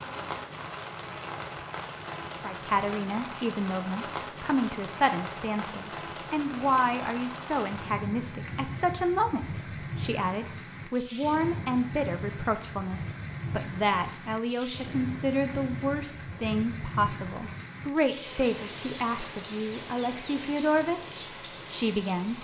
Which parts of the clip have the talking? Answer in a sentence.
You can hear the talking from 2.4 to 22.3 s.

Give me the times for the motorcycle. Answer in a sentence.
The motorcycle can't be heard in this clip.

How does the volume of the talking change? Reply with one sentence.
The loudness of the talking stays about the same.